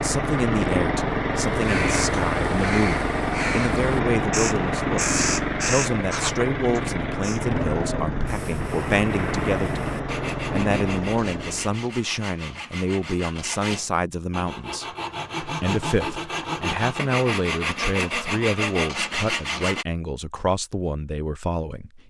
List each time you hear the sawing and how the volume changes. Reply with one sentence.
You can hear the sawing from 10.1 to 19.9 s, getting louder.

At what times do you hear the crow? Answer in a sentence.
You can hear the crow from 1.4 to 7.4 s.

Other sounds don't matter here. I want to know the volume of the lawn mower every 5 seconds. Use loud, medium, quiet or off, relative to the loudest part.
loud, loud, medium, off, off.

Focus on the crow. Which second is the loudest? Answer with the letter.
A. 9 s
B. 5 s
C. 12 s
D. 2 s
B.